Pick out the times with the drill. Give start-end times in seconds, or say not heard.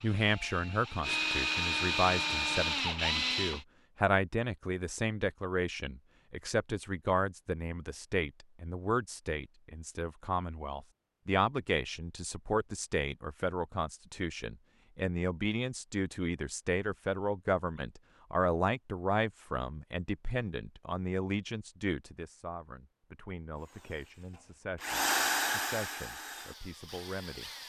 0.0-3.6, 23.6-27.6.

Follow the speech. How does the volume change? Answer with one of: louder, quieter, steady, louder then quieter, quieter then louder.
quieter.